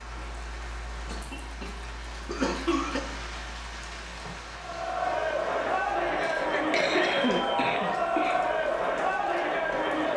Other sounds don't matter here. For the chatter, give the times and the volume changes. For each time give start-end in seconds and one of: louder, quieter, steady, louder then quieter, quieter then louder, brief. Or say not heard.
4.5-10.1 steady.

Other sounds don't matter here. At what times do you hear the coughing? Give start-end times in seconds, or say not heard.
1.0-3.0, 6.0-8.4.